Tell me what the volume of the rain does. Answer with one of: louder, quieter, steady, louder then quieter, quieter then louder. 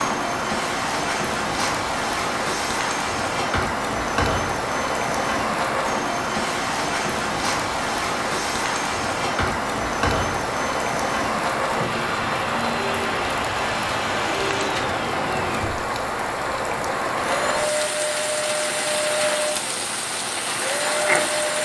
steady.